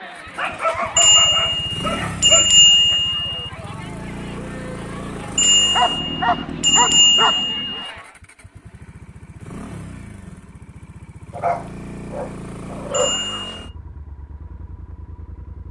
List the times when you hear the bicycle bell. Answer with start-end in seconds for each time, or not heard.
0.9-3.4, 5.3-7.8, 12.9-13.6.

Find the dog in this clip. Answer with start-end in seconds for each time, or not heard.
0.3-3.0, 5.7-7.4, 11.3-13.6.